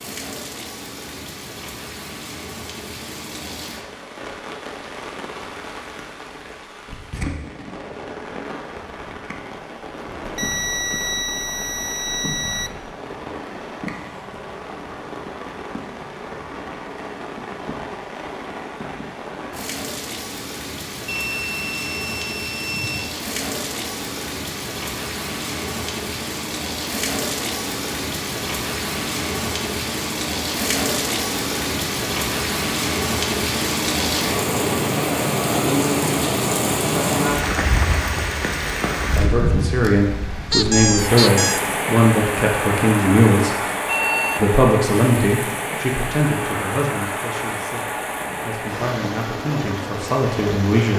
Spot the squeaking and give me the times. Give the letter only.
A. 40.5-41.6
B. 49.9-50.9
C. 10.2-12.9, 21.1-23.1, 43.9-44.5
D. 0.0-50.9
A.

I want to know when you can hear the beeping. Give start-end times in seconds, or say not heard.
10.2-12.9, 21.1-23.1, 43.9-44.5.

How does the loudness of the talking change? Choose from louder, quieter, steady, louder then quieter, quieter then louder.
quieter then louder.